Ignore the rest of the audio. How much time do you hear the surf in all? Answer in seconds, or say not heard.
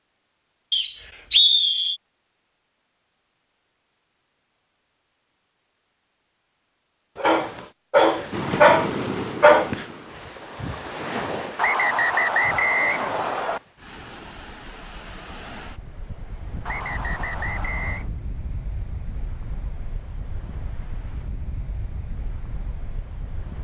15 s.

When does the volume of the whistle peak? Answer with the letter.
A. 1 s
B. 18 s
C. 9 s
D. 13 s
A.